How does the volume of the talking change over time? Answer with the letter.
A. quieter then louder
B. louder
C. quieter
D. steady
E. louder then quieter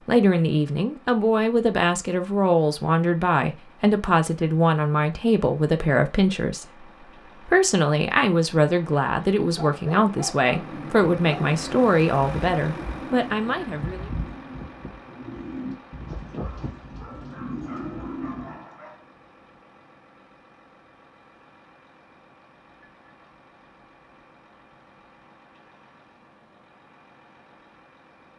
D.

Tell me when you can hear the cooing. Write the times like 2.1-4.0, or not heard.
10.5-18.6.